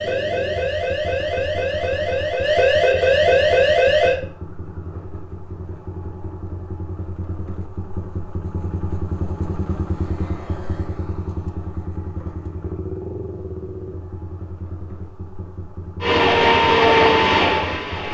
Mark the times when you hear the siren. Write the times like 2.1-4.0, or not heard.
0.0-4.2, 16.0-18.0.